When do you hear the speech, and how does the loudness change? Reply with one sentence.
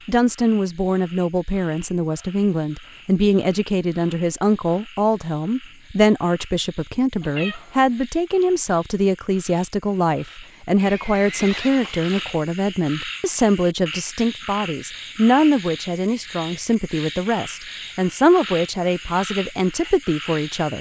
You can hear the speech from 0.1 to 20.7 s, at a steady volume.